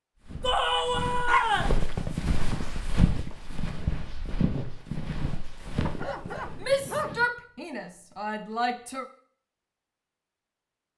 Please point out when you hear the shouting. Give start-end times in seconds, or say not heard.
0.4-1.8, 6.6-9.1.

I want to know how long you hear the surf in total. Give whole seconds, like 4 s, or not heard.
not heard.